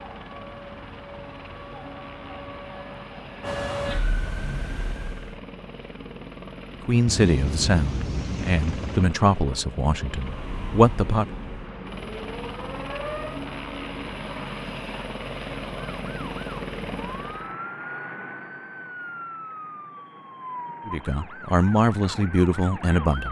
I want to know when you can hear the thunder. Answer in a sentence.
The thunder can be heard from 7.0 to 9.1 s.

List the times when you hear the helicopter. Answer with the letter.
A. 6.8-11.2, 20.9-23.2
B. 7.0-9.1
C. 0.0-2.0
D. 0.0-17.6
D.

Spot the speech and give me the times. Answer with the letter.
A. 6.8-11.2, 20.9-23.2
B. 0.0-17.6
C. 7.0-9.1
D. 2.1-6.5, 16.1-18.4
A.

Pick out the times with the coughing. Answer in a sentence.
You can't hear the coughing here.